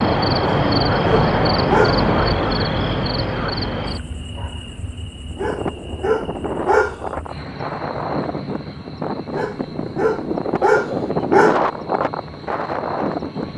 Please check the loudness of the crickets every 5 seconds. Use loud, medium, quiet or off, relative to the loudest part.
loud, quiet, quiet.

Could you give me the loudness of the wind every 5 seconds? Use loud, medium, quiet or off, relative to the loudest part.
off, medium, loud.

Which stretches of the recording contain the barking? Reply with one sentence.
You can hear the barking from 0.4 to 2.0 s, from 5.3 to 7.0 s and from 9.3 to 11.7 s.